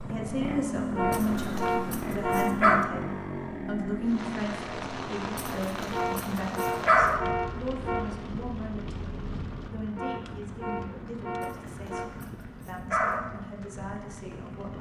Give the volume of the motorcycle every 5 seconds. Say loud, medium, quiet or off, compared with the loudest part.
loud, medium, medium.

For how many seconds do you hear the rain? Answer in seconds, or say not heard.
11 s.